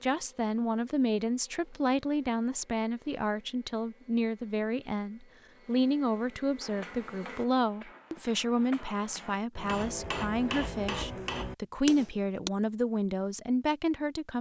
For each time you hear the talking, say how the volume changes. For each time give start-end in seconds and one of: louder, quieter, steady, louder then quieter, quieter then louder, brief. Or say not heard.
0.0-14.3 steady.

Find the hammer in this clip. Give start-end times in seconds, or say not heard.
6.6-12.5.